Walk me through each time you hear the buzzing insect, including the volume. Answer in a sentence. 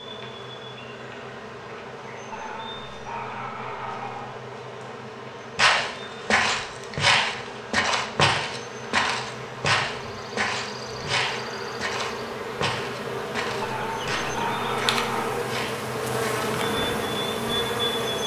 The buzzing insect can be heard from 0.0 to 18.2 s, getting louder.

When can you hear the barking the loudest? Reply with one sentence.
The volume of the barking peaks at 15 seconds.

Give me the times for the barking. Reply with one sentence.
The barking can be heard from 2.3 to 4.3 s and from 13.6 to 15.4 s.